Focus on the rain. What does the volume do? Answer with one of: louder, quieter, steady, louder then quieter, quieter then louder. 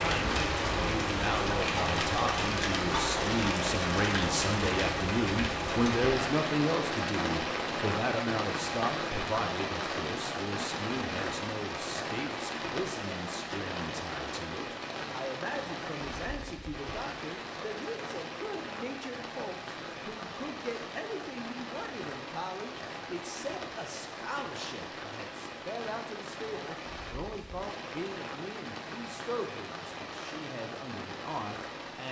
quieter.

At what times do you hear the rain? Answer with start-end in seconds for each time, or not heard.
0.0-32.0.